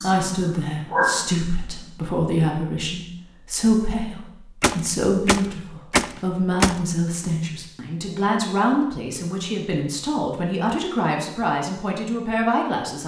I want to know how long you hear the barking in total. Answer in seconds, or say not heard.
2 s.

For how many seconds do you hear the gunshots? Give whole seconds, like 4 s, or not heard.
2 s.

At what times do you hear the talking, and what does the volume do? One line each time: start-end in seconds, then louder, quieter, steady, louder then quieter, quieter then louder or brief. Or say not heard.
0.0-13.0 steady.